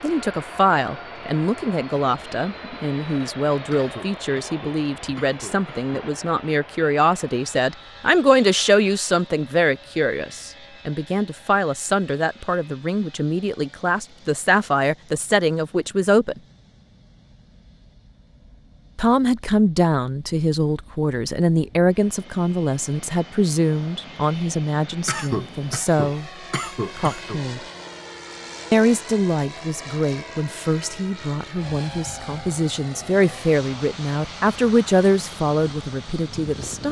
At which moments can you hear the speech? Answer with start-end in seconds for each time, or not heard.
0.0-16.4, 18.9-26.3, 26.9-27.6, 28.7-36.8.